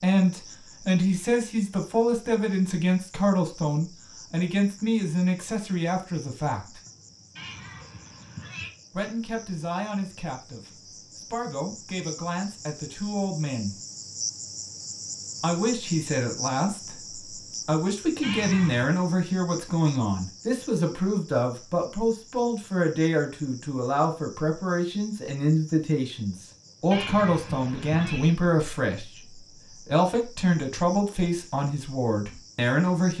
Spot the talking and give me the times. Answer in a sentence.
You can hear the talking from 0.0 to 6.8 s, from 8.9 to 13.8 s and from 15.4 to 33.1 s.